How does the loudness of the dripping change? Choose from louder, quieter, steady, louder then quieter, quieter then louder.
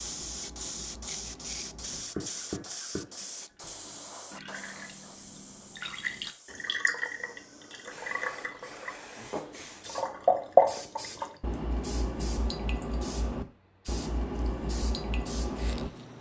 louder then quieter.